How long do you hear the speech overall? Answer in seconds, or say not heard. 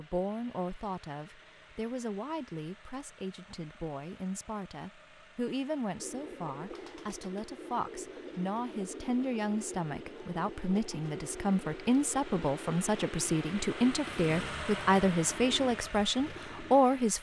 17 s.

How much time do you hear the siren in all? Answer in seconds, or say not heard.
not heard.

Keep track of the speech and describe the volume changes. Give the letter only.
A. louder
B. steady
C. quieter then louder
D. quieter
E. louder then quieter
A.